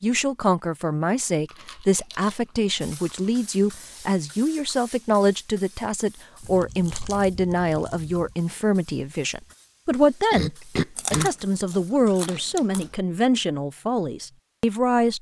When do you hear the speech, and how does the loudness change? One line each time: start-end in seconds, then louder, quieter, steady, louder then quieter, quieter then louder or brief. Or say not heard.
0.0-15.1 steady.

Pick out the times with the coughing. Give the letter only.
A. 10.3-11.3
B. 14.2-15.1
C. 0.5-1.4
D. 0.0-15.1
A.